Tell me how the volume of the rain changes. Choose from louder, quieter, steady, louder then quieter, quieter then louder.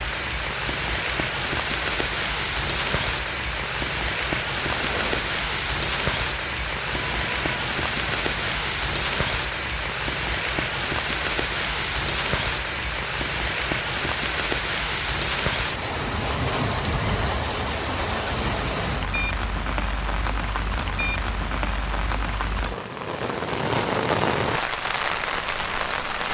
steady.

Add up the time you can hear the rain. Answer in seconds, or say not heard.
26 s.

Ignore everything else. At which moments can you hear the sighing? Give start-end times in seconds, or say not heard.
4.6-5.5.